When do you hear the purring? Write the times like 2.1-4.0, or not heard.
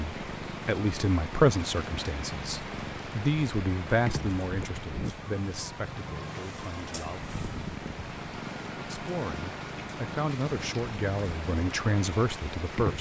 0.0-12.9.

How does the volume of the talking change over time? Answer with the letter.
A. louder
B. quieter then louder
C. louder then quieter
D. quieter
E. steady
B.